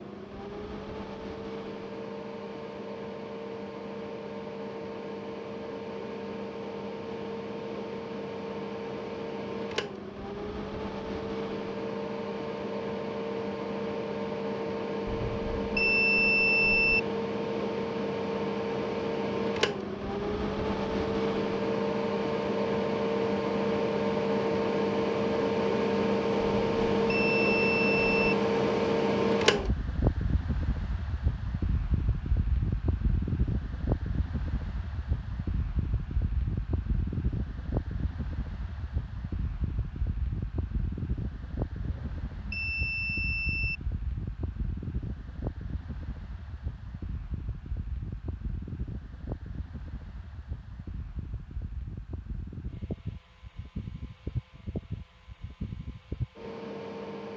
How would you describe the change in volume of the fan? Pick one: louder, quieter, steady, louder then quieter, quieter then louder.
louder then quieter.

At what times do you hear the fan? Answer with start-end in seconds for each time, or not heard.
0.0-57.3.